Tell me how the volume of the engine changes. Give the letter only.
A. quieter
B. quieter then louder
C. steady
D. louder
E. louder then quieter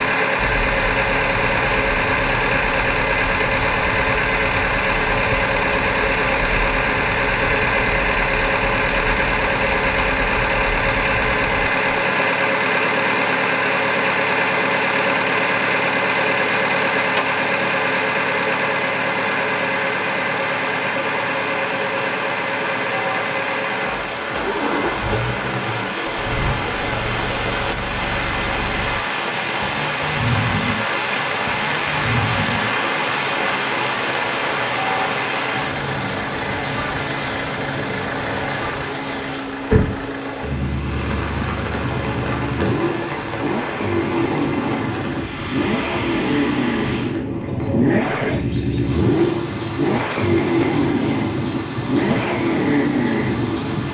B.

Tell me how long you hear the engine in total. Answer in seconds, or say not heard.
54 s.